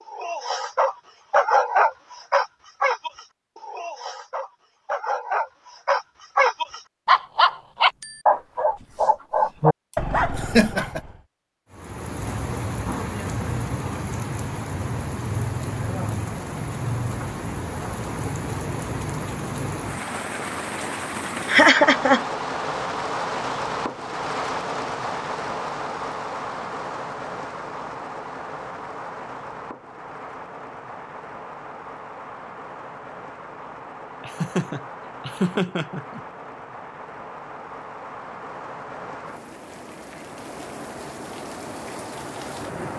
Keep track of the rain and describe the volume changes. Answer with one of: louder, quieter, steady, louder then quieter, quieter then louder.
quieter.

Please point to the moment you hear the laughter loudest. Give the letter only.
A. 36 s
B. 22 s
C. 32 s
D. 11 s
B.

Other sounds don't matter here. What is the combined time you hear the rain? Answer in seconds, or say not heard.
31 s.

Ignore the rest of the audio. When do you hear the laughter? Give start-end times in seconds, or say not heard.
9.9-11.0, 21.4-22.2, 34.2-36.2.